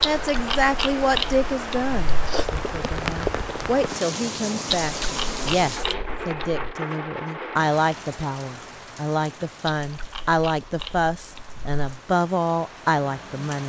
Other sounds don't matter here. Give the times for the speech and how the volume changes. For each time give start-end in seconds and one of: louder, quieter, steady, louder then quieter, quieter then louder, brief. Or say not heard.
0.0-13.6 steady.